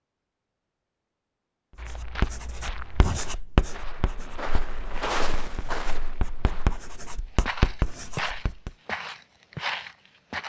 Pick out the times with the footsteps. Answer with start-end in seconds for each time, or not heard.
1.8-10.4.